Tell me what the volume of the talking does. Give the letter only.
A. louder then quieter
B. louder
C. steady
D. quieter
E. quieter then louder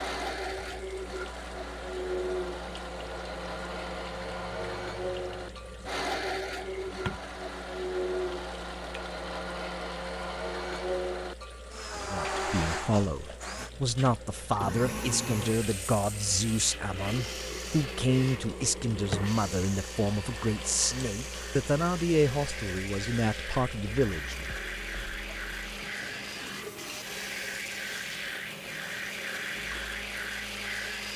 C.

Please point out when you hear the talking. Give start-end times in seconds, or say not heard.
11.9-24.4.